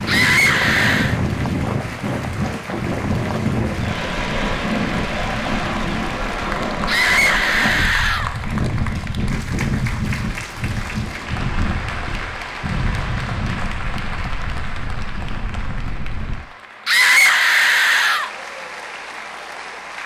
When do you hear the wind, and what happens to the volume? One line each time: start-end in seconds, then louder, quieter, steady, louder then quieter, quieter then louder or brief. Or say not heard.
0.0-16.4 quieter.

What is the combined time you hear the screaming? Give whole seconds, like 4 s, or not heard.
4 s.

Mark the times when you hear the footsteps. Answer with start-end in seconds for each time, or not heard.
not heard.